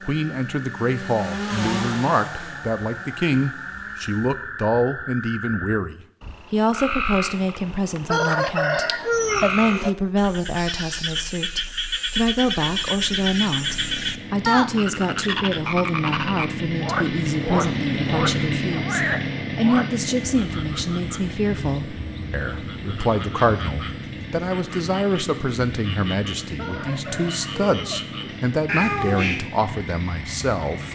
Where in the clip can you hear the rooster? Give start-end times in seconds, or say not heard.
8.1-9.9, 26.6-28.1.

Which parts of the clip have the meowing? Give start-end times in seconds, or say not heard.
28.6-29.4.